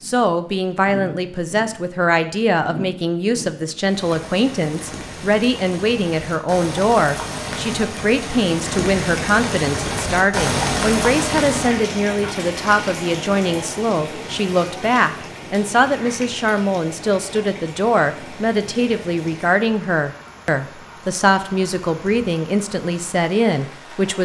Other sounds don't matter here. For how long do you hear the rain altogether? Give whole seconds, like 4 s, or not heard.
24 s.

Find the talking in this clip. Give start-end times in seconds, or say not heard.
0.0-24.1.